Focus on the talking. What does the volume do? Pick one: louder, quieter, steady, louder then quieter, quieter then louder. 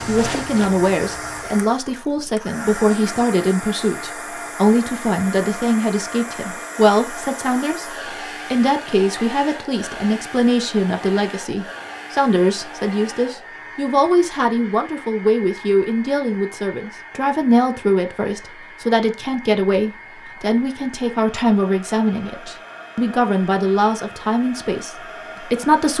steady.